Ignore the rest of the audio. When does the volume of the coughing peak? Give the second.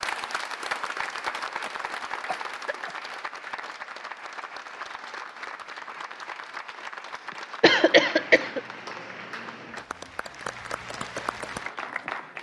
8 s.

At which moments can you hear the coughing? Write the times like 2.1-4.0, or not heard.
1.6-3.0, 7.3-8.6.